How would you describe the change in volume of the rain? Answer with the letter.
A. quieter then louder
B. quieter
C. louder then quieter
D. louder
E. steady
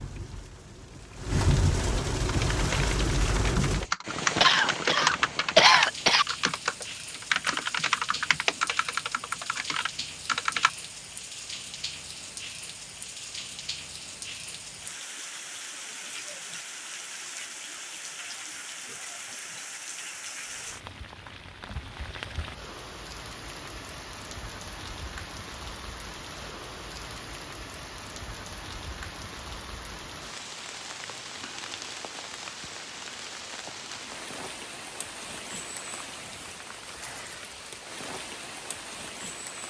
B.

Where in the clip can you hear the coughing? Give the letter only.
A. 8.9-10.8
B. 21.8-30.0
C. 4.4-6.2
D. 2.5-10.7
C.